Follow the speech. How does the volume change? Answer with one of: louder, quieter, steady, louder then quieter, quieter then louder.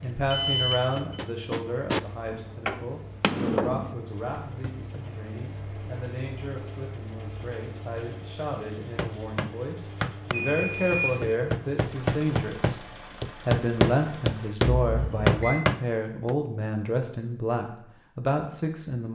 quieter then louder.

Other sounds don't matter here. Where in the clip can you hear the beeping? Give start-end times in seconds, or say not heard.
0.3-1.2, 10.3-11.2, 14.6-15.6.